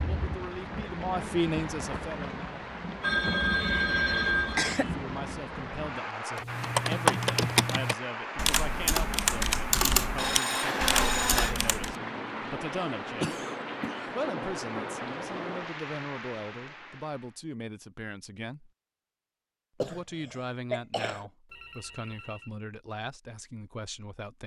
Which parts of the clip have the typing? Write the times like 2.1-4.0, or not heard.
6.3-11.9.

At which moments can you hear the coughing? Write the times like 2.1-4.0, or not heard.
4.3-5.0, 13.2-14.1, 19.8-21.3.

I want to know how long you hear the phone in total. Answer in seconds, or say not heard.
4 s.